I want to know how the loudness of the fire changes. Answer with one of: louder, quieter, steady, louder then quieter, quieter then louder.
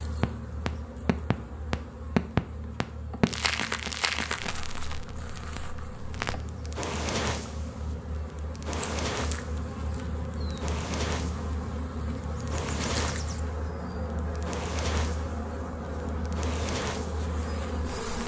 quieter.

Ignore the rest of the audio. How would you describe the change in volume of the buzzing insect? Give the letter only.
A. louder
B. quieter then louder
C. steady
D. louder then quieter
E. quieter
A.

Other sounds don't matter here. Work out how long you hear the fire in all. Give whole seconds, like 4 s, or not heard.
18 s.